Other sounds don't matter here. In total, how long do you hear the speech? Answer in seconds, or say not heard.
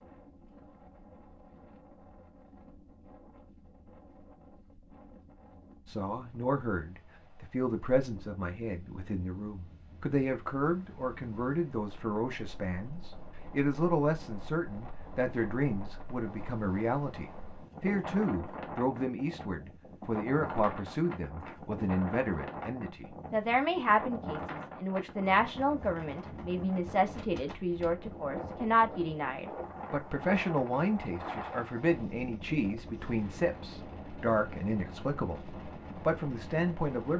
31 s.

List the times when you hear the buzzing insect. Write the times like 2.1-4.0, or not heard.
not heard.